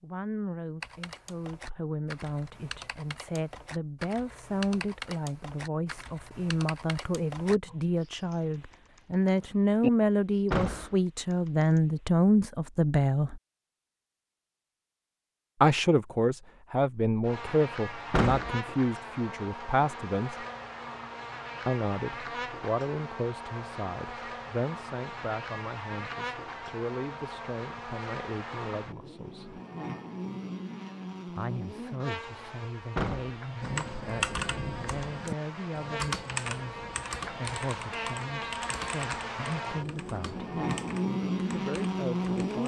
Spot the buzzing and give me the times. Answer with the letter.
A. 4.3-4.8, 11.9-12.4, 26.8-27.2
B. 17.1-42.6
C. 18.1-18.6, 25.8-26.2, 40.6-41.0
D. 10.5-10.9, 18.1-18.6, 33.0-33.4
B.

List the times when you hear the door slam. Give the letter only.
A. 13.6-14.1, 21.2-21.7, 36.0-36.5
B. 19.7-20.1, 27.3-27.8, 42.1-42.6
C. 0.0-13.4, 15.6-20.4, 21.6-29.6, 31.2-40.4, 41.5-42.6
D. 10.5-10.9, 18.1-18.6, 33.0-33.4
D.